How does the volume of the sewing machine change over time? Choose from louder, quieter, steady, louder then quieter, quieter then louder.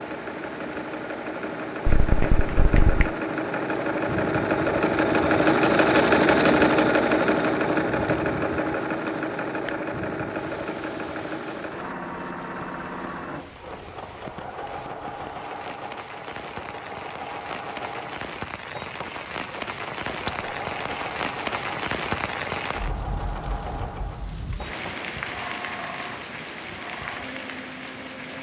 quieter.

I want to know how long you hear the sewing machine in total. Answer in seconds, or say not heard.
28 s.